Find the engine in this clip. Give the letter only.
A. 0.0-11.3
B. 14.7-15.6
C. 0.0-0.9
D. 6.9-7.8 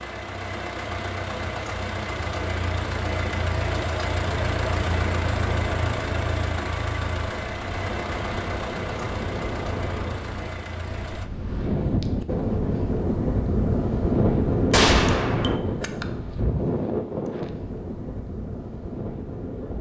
A.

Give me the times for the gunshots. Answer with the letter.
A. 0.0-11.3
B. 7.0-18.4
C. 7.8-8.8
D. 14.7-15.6
D.